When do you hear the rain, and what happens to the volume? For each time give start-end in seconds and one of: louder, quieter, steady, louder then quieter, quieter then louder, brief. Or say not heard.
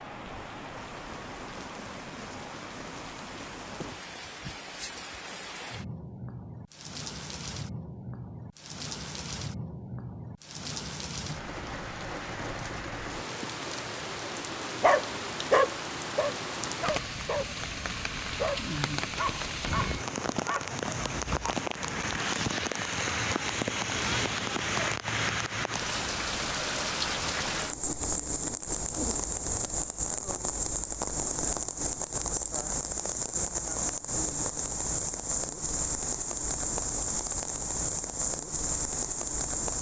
0.0-39.7 louder.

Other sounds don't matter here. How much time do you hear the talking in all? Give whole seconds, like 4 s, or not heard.
not heard.